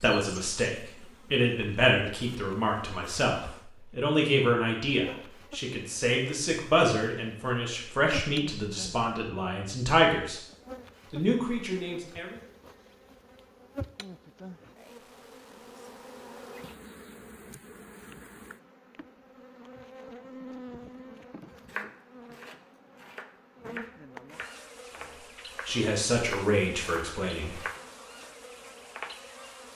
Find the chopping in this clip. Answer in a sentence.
You can hear the chopping from 21.6 to 29.1 s.